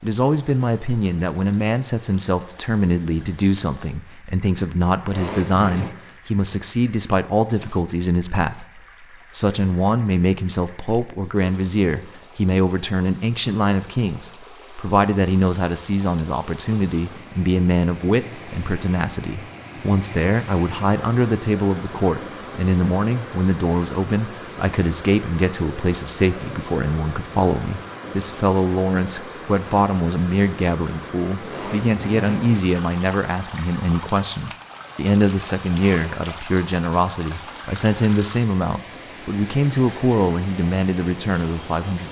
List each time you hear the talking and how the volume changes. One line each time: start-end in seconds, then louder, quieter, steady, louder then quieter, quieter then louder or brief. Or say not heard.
0.0-42.0 steady.